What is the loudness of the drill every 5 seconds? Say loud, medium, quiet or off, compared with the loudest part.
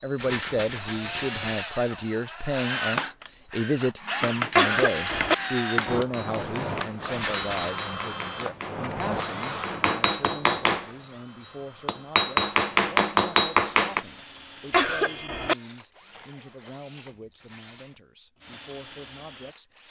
loud, loud, quiet, quiet.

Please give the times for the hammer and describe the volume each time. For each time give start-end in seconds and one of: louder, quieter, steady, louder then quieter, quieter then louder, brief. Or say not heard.
4.0-11.1 louder
11.8-14.1 brief.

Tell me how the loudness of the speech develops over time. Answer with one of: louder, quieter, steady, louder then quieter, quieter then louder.
quieter.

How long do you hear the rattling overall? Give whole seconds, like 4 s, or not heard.
3 s.